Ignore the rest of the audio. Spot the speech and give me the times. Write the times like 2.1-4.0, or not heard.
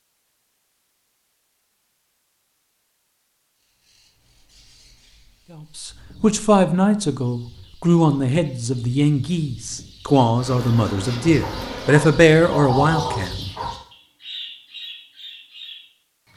5.5-13.3.